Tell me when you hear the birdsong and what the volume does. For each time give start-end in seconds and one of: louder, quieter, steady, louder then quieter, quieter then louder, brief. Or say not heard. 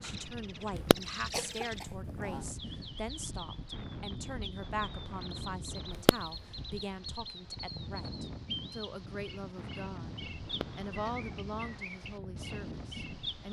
0.0-13.4 steady.